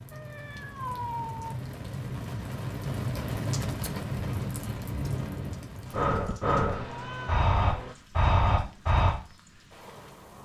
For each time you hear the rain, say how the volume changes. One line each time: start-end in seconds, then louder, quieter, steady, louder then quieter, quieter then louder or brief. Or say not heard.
0.0-10.4 louder then quieter.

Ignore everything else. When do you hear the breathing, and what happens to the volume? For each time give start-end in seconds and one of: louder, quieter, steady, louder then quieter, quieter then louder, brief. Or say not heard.
4.2-9.2 louder.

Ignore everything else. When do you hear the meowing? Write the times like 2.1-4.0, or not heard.
0.1-1.6, 6.7-8.0.